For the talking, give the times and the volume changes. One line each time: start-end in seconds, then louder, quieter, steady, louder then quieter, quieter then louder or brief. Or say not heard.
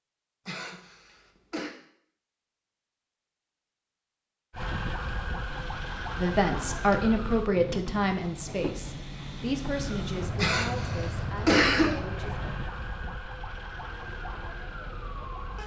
6.2-12.4 quieter.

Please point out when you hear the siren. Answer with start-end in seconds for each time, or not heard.
4.5-7.5, 9.7-15.6.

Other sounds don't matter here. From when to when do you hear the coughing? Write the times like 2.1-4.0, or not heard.
0.5-1.8, 10.3-11.9.